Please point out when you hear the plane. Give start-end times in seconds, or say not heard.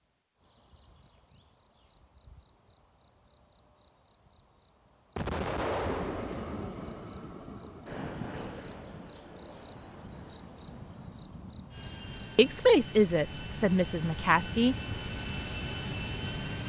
5.8-16.6.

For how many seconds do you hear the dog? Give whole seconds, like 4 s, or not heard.
not heard.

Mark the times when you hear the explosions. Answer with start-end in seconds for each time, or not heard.
5.2-6.6.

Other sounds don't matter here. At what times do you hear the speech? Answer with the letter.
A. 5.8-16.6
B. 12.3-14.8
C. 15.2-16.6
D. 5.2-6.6
B.